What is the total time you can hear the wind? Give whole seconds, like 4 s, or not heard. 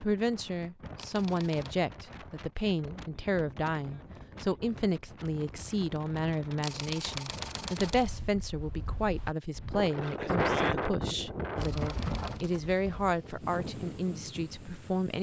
15 s.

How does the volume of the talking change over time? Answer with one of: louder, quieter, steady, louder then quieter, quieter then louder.
steady.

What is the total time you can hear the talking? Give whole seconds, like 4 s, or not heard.
15 s.